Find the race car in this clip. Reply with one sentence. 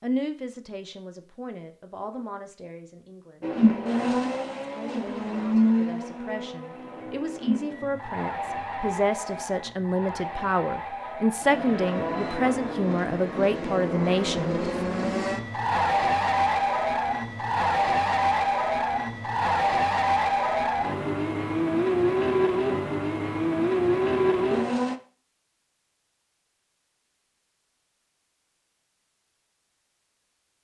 You can hear the race car from 3.4 to 24.9 s.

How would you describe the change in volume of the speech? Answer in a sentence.
The volume of the speech goes down, then up.